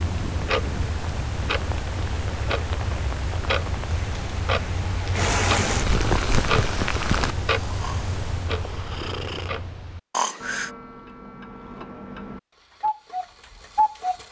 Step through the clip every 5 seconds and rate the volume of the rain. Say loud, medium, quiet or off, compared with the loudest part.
quiet, loud, off.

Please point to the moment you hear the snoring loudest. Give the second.
10 s.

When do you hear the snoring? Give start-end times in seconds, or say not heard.
7.7-10.7.